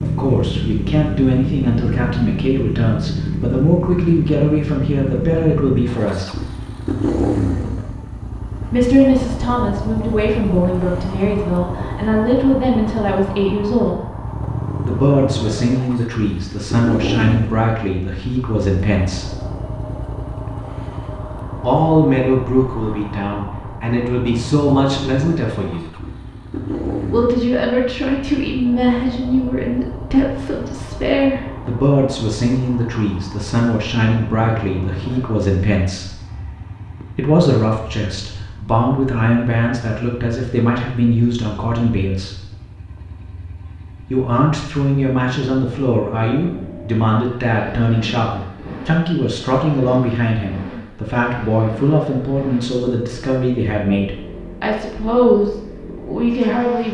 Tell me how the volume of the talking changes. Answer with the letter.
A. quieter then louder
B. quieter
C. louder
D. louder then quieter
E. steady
E.